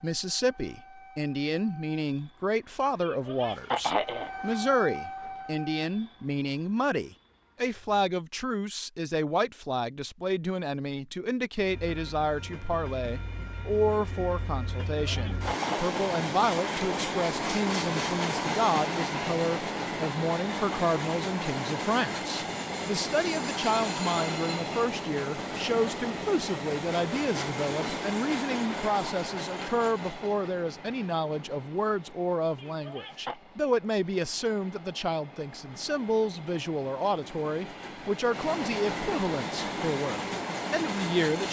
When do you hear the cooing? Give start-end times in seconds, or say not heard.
not heard.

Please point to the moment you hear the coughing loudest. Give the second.
4 s.